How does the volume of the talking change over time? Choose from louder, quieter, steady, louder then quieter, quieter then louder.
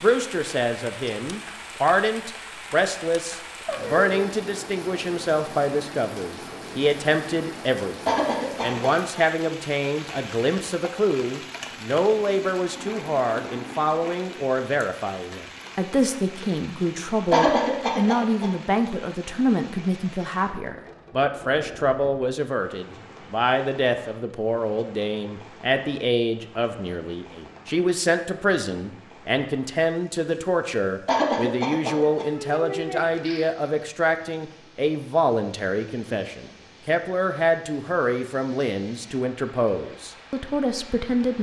steady.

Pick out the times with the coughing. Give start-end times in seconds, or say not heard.
8.1-9.2, 17.3-18.5, 31.1-32.2.